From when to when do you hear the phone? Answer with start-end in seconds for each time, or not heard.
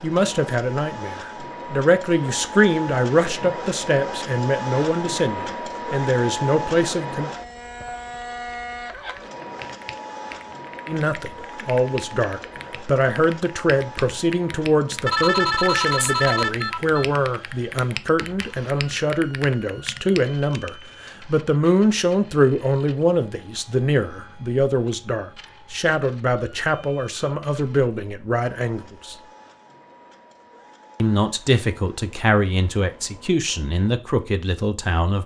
15.1-17.1.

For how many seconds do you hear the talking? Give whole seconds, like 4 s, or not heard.
30 s.